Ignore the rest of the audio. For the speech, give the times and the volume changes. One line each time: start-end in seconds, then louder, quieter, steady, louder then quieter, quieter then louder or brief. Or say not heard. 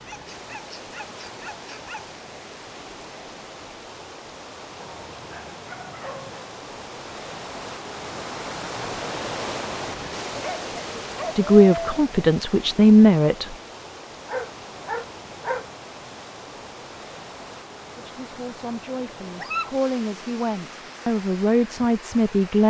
11.3-13.6 brief
17.9-22.6 louder.